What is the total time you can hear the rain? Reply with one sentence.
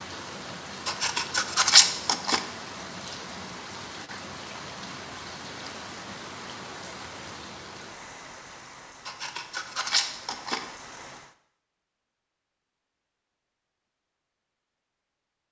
You can hear the rain for 11 seconds altogether.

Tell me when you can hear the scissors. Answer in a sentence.
You can hear the scissors from 0.8 to 2.4 s and from 9.1 to 10.6 s.